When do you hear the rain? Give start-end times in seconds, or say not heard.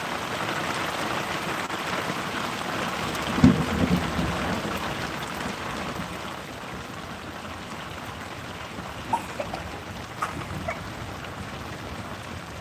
0.0-12.5.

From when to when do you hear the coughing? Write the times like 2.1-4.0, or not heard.
9.1-10.8.